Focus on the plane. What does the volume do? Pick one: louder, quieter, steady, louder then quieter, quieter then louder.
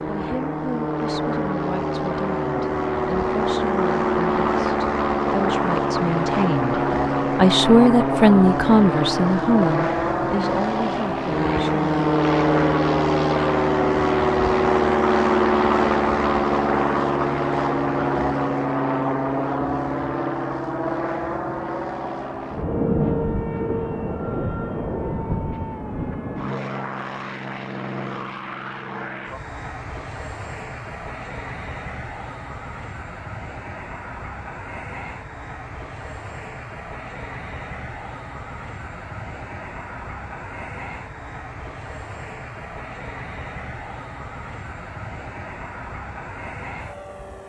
quieter.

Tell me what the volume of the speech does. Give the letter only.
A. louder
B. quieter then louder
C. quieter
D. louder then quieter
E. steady
D.